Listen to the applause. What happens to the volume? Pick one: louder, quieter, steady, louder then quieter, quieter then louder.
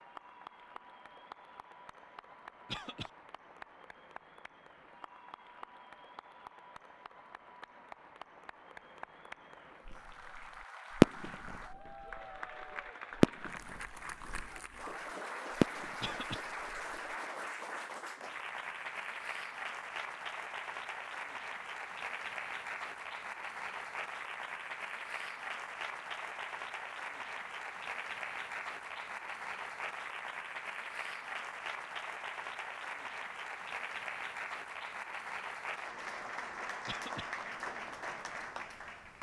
louder.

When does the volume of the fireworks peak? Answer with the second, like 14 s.
11 s.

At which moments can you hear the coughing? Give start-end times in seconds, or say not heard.
2.6-3.1, 16.0-16.4, 36.9-37.3.